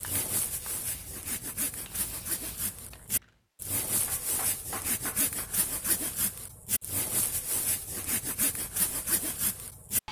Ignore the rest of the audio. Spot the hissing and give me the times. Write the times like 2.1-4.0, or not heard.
0.0-3.4.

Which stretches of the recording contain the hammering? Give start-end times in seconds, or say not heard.
4.0-5.6.